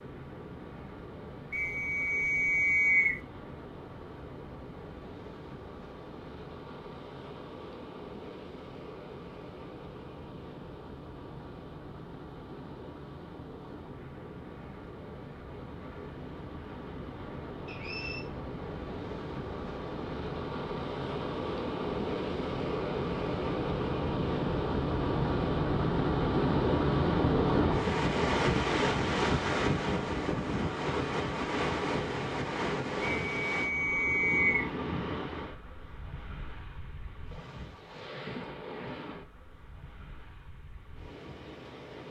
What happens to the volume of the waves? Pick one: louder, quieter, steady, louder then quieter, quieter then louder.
louder then quieter.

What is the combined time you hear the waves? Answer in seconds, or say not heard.
42 s.